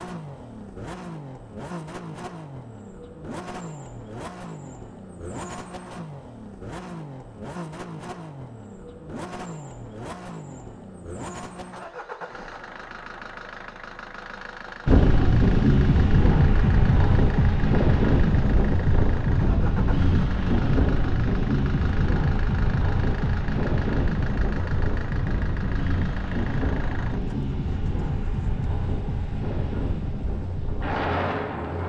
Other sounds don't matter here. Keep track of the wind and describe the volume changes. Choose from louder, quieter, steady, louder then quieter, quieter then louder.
quieter.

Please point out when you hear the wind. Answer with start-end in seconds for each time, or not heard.
14.8-31.8.